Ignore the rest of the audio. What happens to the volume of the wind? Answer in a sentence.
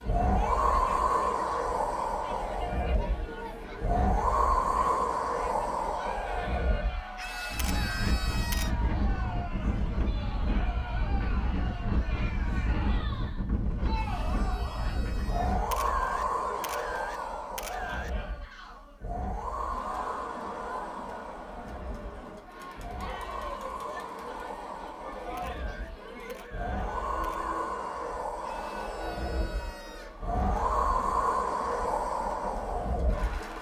The volume of the wind goes down, then up.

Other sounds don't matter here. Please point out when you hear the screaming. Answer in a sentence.
You can hear the screaming from 7.2 to 8.8 s, from 13.9 to 15.8 s and from 28.4 to 30.2 s.